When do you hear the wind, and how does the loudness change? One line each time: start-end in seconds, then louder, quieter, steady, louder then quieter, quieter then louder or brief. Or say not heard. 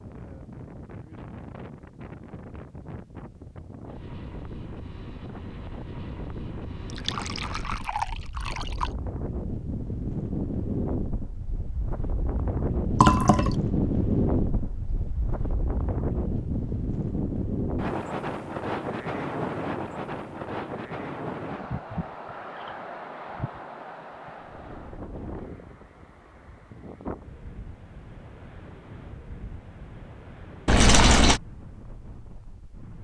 0.0-33.0 louder then quieter.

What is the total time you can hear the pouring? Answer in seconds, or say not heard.
3 s.